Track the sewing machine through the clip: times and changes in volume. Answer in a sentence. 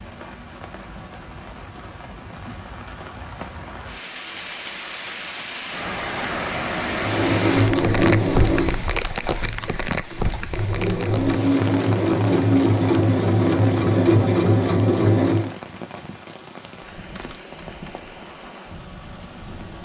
You can hear the sewing machine from 7.0 to 15.6 s, getting quieter then louder.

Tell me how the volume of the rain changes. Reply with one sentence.
The loudness of the rain goes up, then down.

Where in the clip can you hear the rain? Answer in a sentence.
You can hear the rain from 0.0 to 19.8 s.